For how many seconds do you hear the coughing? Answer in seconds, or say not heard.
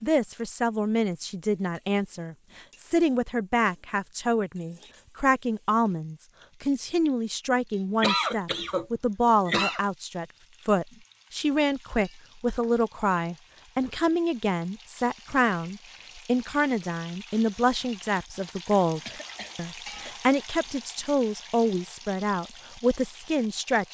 3 s.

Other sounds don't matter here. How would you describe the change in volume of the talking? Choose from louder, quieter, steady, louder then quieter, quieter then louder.
steady.